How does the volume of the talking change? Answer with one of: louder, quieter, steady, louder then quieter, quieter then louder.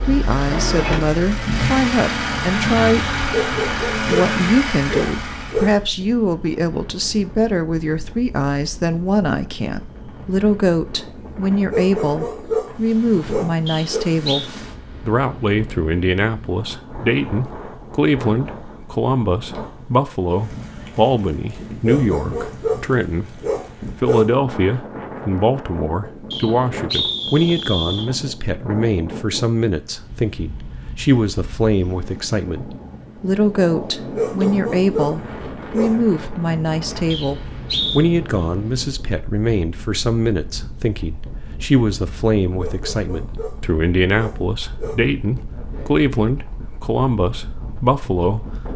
steady.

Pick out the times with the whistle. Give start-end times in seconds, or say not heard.
13.7-14.4, 26.3-28.1, 37.1-38.0.